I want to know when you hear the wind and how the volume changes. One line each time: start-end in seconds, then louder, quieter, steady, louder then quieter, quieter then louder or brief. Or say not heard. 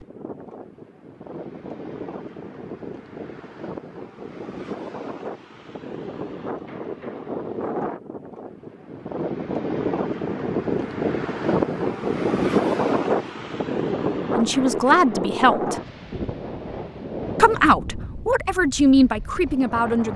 0.0-20.1 louder then quieter.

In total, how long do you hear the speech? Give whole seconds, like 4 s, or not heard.
4 s.